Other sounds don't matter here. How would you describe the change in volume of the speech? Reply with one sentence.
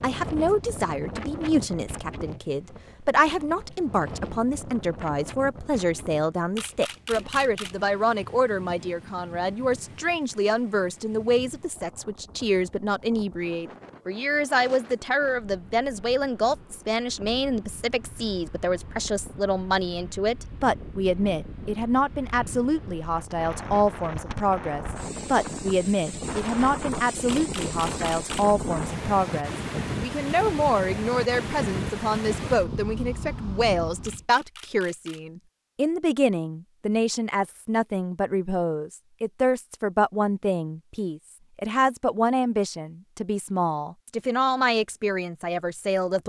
The volume of the speech stays about the same.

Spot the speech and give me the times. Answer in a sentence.
The speech can be heard from 0.0 to 46.2 s.